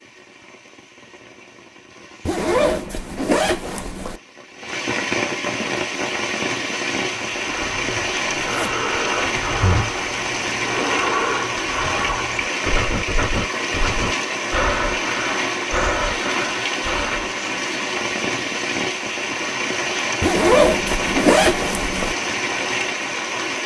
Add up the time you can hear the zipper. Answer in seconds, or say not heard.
4 s.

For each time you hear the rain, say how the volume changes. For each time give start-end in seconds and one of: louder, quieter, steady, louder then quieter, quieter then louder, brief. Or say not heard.
0.0-23.6 louder.